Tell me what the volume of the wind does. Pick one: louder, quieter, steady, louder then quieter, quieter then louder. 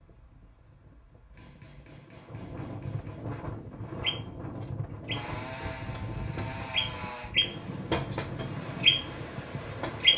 louder.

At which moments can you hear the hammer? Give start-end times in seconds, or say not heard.
1.3-3.2.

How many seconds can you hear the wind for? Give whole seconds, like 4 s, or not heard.
10 s.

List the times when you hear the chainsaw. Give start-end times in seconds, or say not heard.
5.1-7.3.